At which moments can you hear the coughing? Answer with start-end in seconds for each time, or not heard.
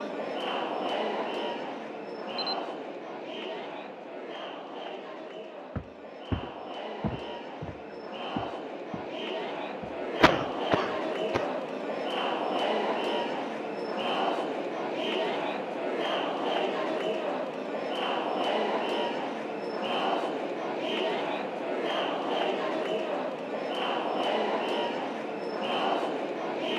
10.2-11.4.